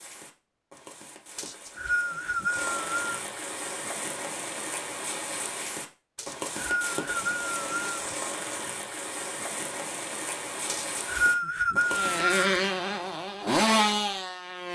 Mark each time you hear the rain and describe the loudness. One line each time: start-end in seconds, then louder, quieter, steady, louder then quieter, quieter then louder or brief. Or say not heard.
0.0-12.5 louder.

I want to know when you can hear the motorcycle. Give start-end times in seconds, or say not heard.
11.9-14.7.